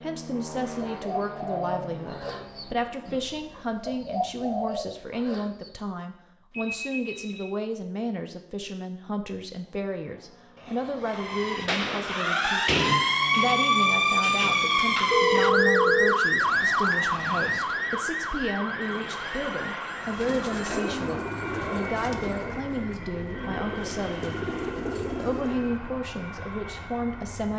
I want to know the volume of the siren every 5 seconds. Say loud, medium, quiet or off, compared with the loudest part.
off, off, loud, loud, quiet, quiet.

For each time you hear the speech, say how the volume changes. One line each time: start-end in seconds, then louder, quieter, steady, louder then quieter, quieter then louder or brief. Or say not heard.
0.0-27.5 steady.